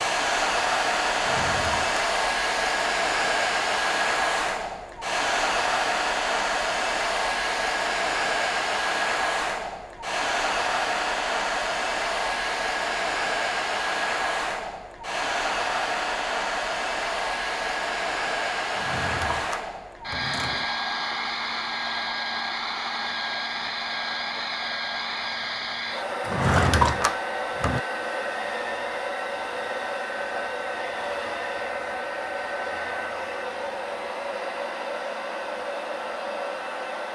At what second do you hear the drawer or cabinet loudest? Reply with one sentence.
The loudest moment of the drawer or cabinet is at 27 seconds.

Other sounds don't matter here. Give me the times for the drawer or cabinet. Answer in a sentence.
You can hear the drawer or cabinet from 1.1 to 2.1 s, from 18.7 to 20.6 s and from 26.2 to 27.8 s.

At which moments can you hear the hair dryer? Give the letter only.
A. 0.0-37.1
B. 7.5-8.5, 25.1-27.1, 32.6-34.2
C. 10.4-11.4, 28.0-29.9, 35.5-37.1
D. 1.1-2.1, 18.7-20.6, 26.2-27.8
A.